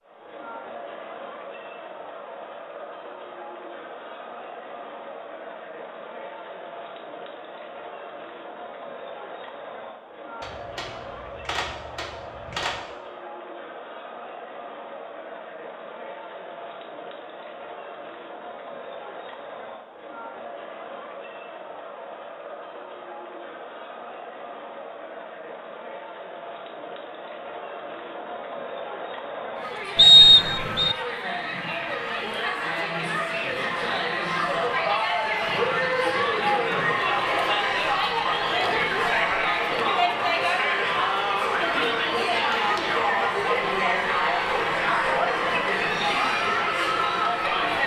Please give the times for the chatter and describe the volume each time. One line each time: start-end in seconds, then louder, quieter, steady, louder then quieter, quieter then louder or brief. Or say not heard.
0.0-47.8 louder.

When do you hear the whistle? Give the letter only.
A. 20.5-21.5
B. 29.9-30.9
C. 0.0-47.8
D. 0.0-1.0
B.